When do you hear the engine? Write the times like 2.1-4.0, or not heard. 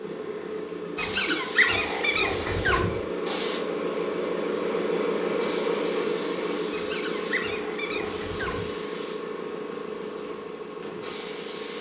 0.0-11.7.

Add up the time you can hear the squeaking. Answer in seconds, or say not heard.
4 s.